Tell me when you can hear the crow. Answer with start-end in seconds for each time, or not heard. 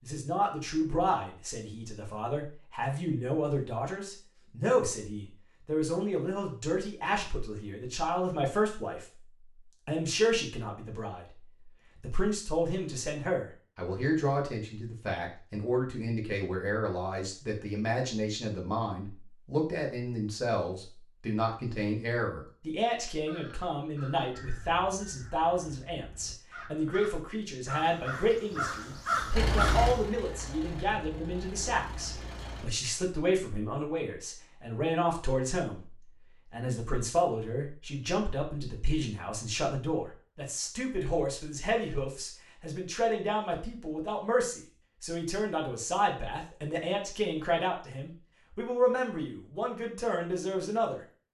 23.1-30.1.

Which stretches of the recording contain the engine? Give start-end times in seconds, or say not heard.
29.3-32.7.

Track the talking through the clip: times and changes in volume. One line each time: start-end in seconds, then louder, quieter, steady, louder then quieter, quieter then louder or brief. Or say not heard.
0.0-9.1 steady
9.8-51.0 steady.